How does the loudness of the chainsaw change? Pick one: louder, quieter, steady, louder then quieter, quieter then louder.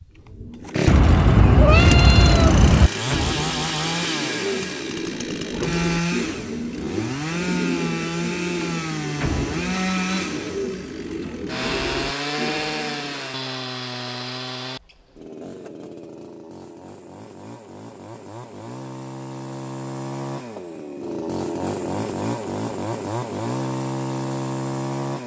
quieter then louder.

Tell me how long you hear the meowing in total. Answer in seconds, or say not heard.
2 s.